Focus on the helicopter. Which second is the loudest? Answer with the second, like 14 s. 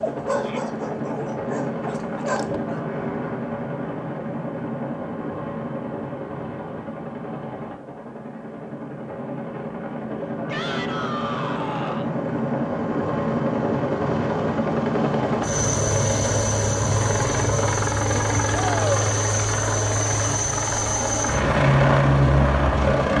22 s.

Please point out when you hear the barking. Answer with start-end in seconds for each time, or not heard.
0.0-2.8.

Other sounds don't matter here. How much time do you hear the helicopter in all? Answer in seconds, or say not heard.
23 s.